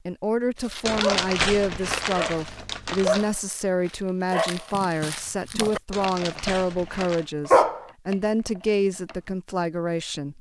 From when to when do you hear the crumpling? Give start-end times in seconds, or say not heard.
0.8-3.3, 5.9-7.3.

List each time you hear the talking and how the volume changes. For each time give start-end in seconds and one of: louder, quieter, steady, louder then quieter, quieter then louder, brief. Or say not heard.
0.1-10.3 steady.